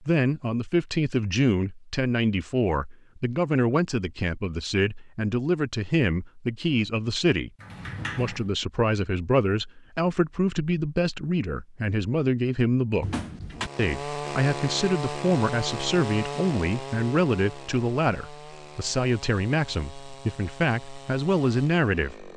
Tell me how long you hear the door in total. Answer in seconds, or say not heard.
2 s.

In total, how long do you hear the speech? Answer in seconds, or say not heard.
21 s.